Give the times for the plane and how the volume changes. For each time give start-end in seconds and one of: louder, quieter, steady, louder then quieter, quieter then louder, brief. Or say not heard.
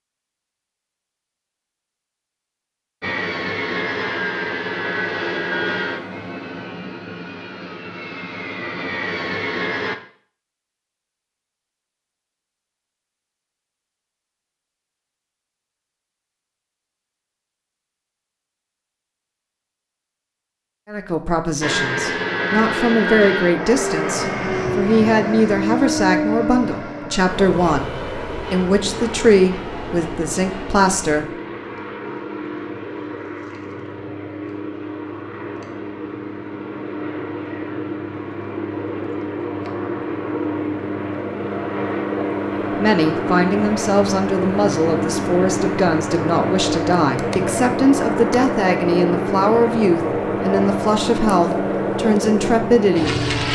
3.0-9.9 quieter then louder
21.6-53.5 quieter then louder.